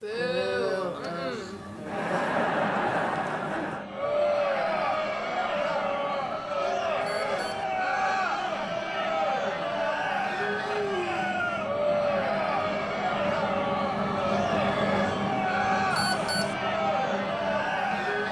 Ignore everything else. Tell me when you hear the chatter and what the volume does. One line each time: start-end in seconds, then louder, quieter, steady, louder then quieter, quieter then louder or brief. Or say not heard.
0.0-18.2 steady.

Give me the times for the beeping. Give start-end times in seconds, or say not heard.
7.0-7.7, 15.9-16.6.